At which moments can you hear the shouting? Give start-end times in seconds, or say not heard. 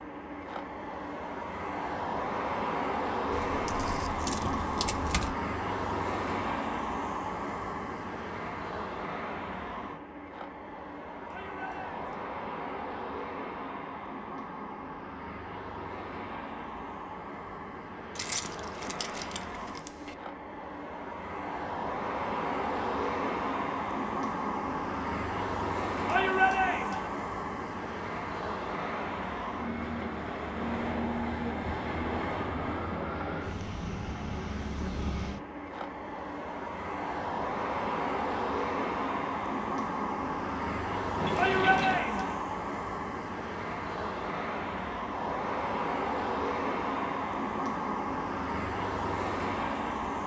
11.2-12.2, 26.1-27.1, 41.4-42.4.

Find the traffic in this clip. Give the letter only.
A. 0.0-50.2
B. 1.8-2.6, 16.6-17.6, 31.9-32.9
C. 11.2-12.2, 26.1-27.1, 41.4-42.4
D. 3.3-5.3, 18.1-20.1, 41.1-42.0
A.